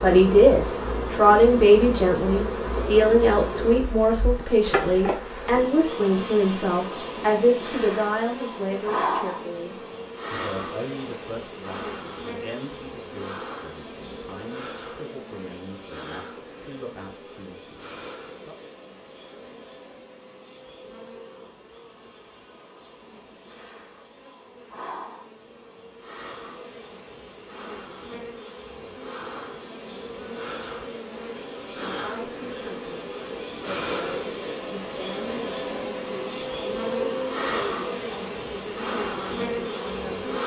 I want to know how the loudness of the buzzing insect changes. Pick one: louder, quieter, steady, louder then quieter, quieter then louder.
quieter then louder.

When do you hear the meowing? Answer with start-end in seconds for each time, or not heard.
not heard.